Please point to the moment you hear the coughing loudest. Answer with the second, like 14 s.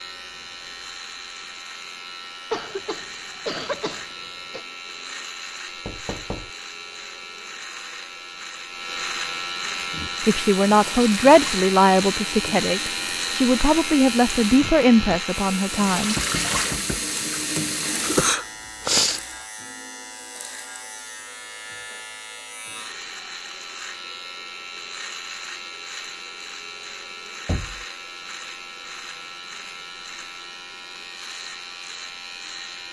19 s.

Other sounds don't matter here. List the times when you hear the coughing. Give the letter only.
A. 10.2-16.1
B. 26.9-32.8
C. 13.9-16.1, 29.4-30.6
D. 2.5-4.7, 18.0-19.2
D.